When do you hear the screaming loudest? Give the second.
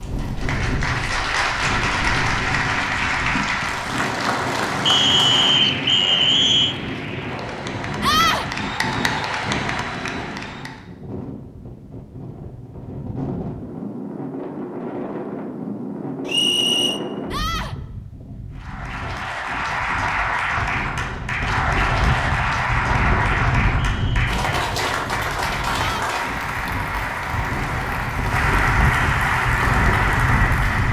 8 s.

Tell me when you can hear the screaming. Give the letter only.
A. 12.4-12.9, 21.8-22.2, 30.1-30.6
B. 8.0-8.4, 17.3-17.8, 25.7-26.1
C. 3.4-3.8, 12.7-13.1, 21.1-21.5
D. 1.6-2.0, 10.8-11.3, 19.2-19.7
B.